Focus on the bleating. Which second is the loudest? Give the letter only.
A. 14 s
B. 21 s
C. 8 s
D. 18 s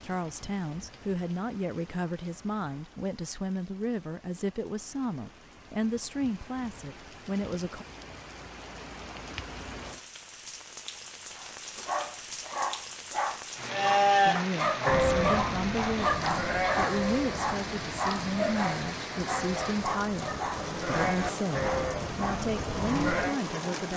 A.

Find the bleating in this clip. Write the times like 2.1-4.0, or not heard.
13.7-23.4.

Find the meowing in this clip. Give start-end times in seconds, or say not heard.
not heard.